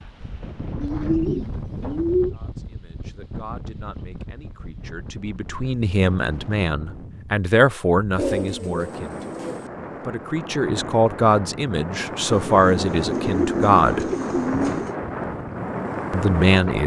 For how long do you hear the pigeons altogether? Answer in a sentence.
You can hear the pigeons for 6 seconds altogether.